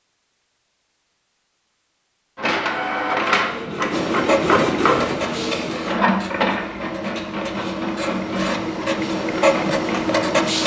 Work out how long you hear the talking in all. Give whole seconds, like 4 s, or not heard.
not heard.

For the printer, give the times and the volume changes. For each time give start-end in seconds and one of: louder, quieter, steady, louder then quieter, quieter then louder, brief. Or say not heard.
2.4-10.6 quieter.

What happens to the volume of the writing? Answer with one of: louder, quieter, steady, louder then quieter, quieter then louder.
quieter then louder.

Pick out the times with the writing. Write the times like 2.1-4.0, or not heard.
3.9-10.6.